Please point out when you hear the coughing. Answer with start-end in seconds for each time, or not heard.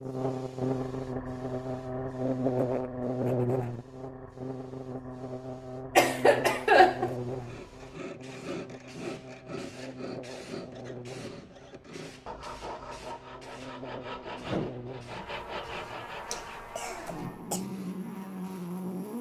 6.0-7.2, 16.3-17.6.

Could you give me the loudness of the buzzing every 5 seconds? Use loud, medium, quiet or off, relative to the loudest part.
loud, medium, quiet, medium.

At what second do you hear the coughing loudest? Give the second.
7 s.